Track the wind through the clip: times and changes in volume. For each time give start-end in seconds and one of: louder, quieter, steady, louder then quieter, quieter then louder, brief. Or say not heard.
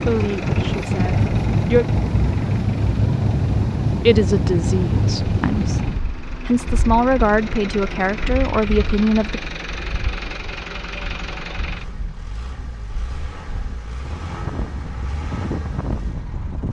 0.0-16.6 quieter then louder.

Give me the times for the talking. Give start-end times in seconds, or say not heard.
0.0-1.9, 4.0-9.4.